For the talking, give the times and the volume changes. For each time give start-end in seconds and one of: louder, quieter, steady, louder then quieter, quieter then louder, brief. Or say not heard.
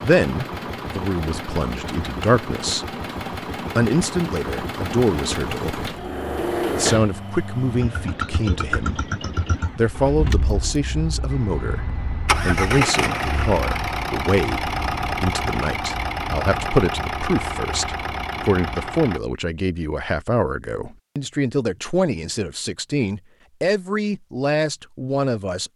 0.0-2.9 brief
3.8-5.9 brief
6.8-9.0 brief
9.8-25.7 steady.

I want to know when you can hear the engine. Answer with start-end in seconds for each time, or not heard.
0.0-19.2.